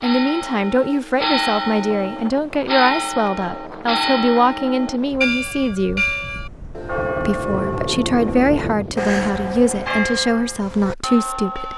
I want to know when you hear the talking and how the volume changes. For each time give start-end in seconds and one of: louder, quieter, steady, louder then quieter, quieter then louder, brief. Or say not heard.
0.0-6.0 steady
7.2-11.7 steady.